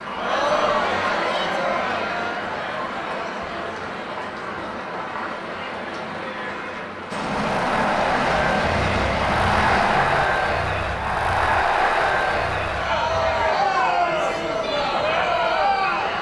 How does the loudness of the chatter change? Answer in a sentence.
The volume of the chatter goes down, then up.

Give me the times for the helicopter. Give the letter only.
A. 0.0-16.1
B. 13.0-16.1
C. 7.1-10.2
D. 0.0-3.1
C.